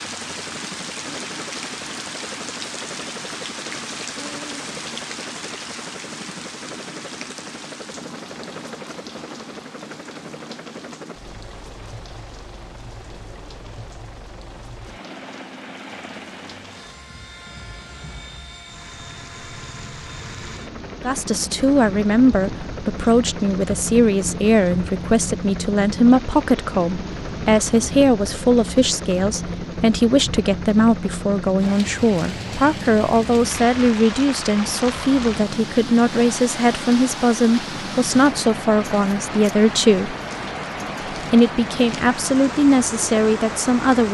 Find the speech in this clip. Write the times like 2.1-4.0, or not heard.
21.0-40.1, 41.1-44.0.